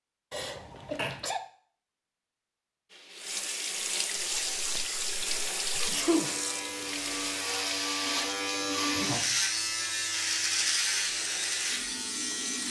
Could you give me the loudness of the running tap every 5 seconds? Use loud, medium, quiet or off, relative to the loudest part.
loud, loud, medium.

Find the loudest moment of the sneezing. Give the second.
6 s.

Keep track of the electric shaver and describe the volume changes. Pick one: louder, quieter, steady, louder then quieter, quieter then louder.
louder.